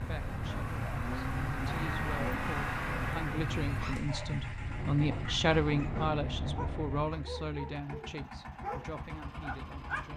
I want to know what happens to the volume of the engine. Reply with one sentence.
The volume of the engine goes down, then up.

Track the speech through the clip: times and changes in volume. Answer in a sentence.
You can hear the speech from 0.1 to 10.1 s, getting louder then quieter.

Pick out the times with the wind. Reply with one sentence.
The wind can be heard from 0.0 to 7.3 s.